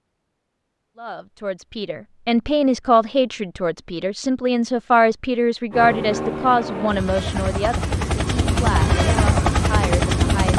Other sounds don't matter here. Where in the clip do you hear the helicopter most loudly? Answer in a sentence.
The volume of the helicopter peaks at 9 seconds.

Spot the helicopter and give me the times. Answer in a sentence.
The helicopter can be heard from 5.7 to 10.5 s.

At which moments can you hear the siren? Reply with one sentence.
The siren can't be heard in this clip.